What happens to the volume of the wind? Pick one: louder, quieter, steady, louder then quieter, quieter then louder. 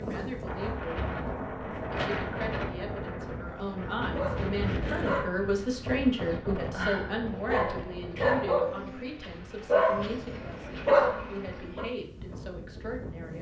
quieter.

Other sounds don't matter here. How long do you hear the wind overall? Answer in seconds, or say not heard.
13 s.